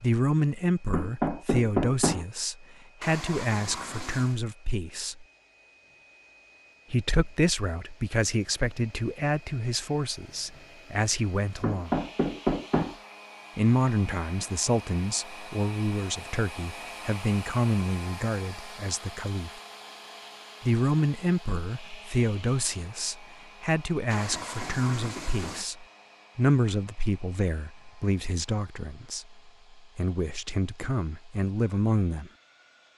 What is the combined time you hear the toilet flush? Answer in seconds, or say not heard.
3 s.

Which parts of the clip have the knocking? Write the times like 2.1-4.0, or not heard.
0.9-2.2, 11.6-12.9, 24.3-25.6.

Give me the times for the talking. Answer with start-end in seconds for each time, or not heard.
0.0-5.2, 6.9-12.0, 13.6-19.6, 20.6-32.3.